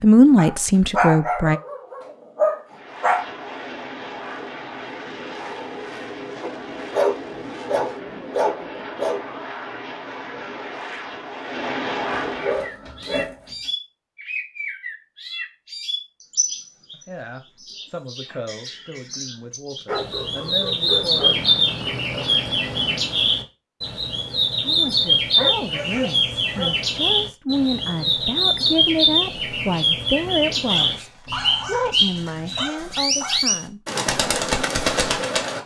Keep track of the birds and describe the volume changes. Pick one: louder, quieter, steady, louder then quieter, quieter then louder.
louder.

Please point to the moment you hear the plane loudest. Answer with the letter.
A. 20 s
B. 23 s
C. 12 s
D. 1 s
C.